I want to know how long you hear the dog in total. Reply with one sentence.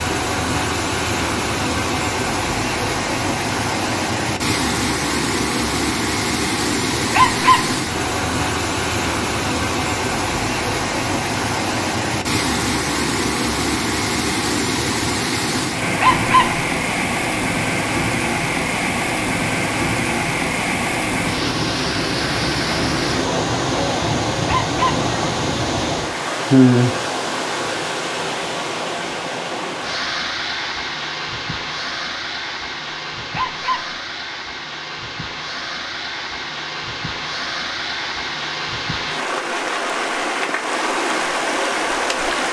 You can hear the dog for 3 seconds altogether.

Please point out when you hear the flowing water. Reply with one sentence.
You can hear the flowing water from 0.0 to 42.4 s.